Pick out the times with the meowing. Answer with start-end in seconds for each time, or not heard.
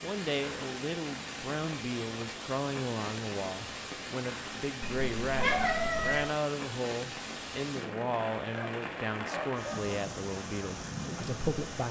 4.8-6.3.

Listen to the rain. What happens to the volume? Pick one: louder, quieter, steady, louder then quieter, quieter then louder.
steady.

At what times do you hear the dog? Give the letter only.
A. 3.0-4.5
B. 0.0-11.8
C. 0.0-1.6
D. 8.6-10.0
D.